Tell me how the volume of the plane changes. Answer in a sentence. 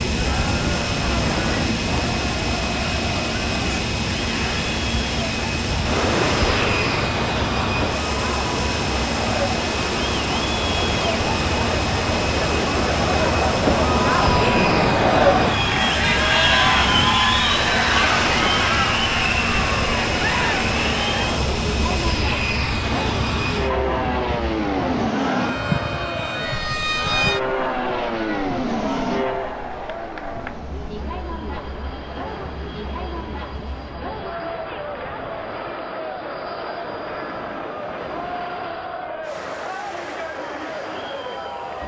The loudness of the plane goes down.